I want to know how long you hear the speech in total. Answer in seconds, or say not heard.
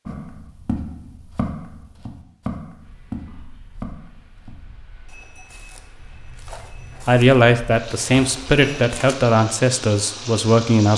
4 s.